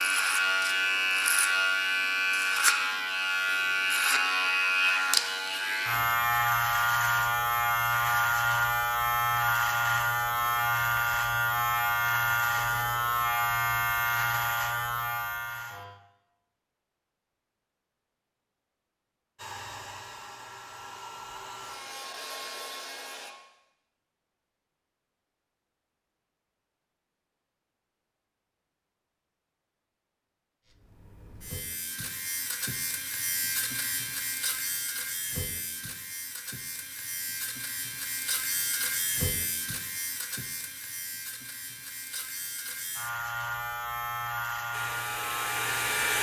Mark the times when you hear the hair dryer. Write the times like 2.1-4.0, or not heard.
19.4-23.3, 44.7-46.1.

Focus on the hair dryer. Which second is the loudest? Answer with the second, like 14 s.
46 s.